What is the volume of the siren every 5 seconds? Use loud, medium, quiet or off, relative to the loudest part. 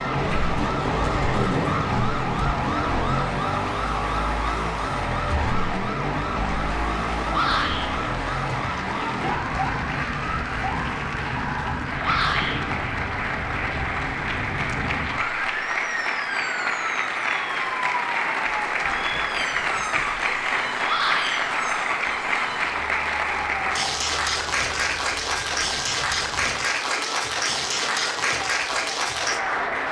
loud, loud, medium, medium, medium, quiet.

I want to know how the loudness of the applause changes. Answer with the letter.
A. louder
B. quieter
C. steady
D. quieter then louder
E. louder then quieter
A.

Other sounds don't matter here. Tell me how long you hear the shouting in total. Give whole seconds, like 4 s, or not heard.
2 s.